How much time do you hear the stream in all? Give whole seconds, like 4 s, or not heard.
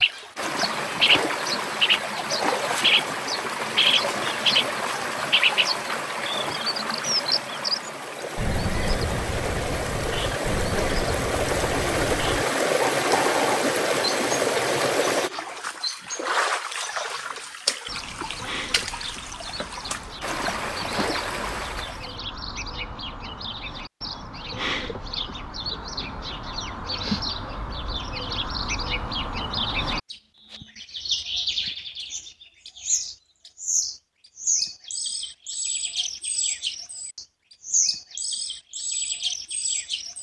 22 s.